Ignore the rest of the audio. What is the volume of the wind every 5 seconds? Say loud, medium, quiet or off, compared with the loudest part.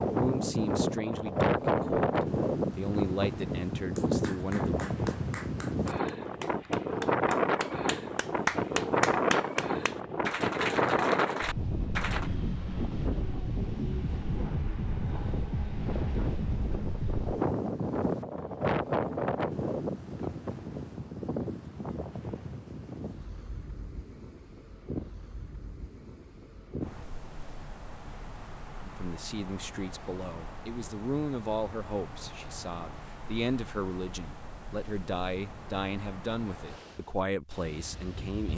loud, loud, loud, loud, medium, quiet, quiet, quiet.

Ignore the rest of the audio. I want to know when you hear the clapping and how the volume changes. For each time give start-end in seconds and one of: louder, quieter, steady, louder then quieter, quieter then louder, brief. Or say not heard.
4.0-12.3 louder.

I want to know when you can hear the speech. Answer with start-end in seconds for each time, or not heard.
0.0-5.0, 28.8-38.5.